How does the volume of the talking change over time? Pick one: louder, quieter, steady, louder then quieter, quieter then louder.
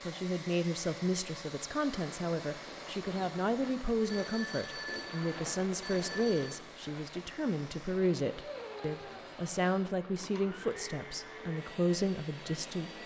steady.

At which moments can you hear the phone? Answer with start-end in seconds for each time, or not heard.
4.0-6.6.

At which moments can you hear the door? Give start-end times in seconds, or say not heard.
not heard.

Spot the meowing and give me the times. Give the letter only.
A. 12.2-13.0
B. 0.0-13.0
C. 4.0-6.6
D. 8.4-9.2
D.